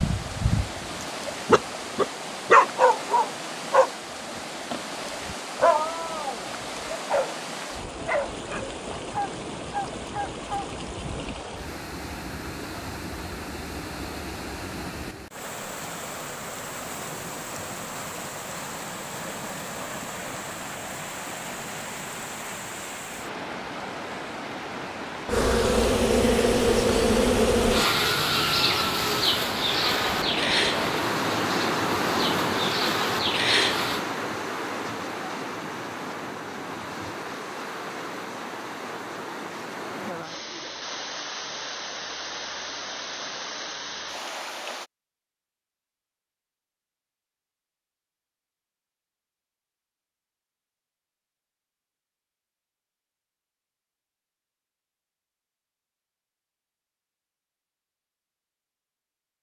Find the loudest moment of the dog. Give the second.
3 s.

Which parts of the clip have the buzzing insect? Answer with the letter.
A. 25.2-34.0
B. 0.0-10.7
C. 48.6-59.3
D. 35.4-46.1
A.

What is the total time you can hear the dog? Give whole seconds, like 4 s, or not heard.
11 s.